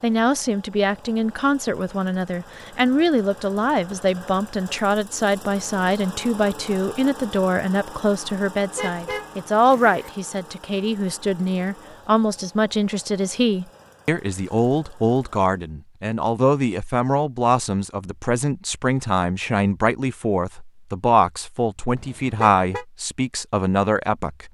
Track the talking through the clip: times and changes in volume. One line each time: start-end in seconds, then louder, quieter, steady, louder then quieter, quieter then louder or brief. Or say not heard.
0.0-24.4 steady.